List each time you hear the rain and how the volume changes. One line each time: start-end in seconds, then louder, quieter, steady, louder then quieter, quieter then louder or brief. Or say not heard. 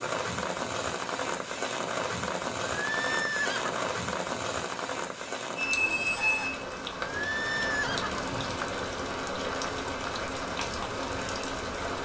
0.0-11.9 steady.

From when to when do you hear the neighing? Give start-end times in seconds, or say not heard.
2.6-3.8, 7.0-8.3.